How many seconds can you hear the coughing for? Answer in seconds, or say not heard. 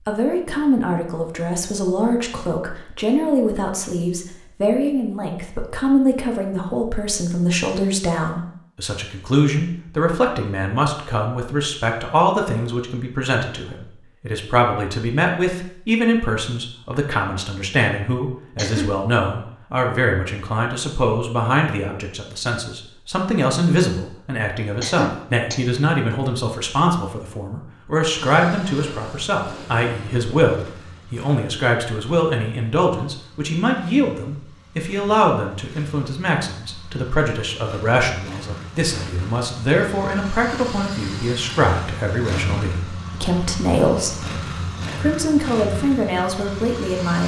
2 s.